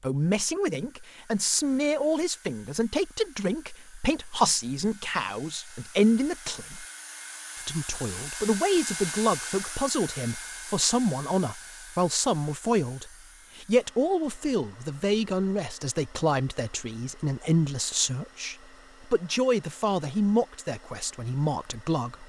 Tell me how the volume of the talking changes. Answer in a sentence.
The volume of the talking stays about the same.